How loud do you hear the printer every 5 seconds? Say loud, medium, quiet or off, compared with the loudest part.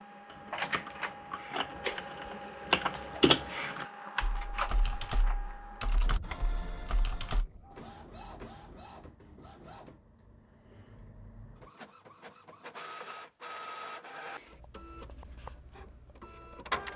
loud, medium, medium, loud.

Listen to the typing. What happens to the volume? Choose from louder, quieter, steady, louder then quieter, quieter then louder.
louder then quieter.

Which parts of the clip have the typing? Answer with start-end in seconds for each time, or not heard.
0.2-7.5.